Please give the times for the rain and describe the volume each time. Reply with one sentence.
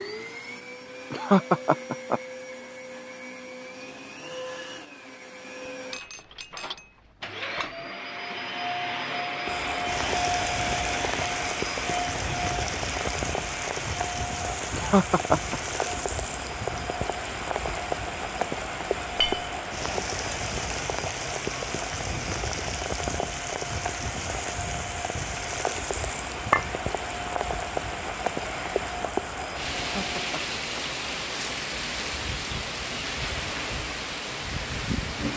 You can hear the rain from 9.4 to 35.3 s, at a steady volume.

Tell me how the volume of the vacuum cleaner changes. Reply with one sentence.
The volume of the vacuum cleaner goes up, then down.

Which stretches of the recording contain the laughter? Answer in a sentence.
You can hear the laughter from 1.1 to 2.2 s, from 14.7 to 15.6 s and from 29.8 to 30.8 s.